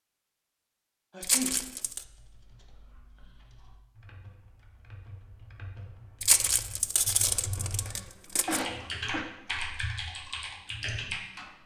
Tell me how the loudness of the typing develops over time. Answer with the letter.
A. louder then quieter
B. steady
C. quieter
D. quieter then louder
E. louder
E.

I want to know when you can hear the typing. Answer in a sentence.
You can hear the typing from 1.8 to 11.4 s.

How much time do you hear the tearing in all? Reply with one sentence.
You can hear the tearing for 3 seconds altogether.